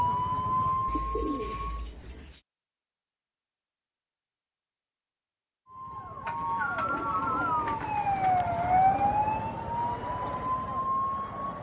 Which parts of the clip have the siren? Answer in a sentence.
The siren can be heard from 0.0 to 1.9 s and from 5.7 to 11.5 s.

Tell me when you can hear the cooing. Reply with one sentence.
You can hear the cooing from 0.8 to 2.4 s and from 6.2 to 8.5 s.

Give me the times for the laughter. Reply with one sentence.
You can't hear the laughter here.